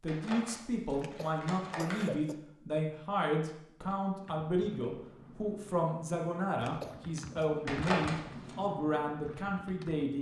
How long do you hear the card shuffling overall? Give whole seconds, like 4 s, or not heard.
3 s.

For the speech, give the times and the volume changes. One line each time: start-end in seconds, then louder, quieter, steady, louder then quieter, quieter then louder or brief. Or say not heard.
0.0-10.1 steady.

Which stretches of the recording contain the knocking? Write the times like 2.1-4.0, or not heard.
not heard.